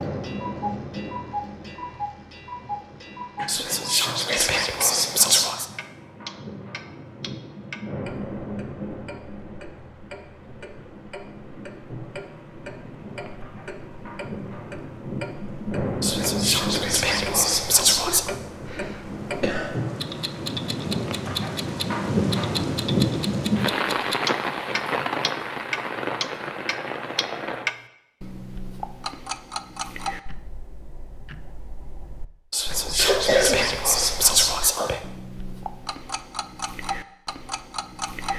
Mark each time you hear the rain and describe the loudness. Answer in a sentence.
You can hear the rain from 0.0 to 27.7 s, getting louder.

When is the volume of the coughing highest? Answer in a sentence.
The loudest moment of the coughing is at 33 seconds.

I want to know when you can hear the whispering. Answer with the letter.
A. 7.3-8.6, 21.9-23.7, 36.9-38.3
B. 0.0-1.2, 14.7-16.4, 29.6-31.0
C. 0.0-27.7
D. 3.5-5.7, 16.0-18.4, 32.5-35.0
D.